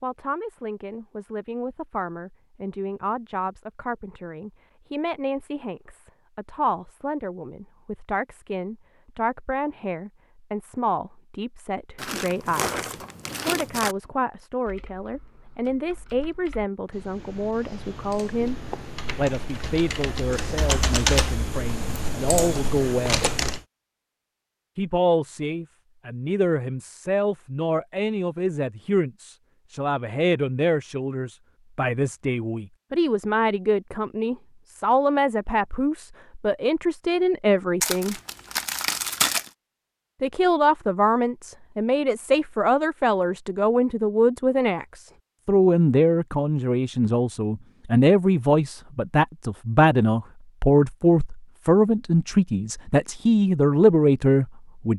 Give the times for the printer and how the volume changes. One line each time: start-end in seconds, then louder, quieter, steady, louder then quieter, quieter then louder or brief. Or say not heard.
not heard.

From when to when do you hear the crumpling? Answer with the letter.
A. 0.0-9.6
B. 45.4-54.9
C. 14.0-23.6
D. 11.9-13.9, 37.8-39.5
D.